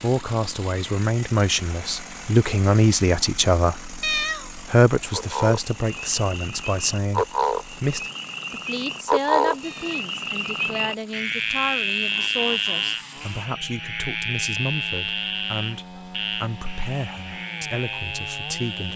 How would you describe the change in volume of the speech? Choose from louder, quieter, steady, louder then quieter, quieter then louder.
quieter.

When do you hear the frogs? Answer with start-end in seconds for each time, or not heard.
5.1-18.9.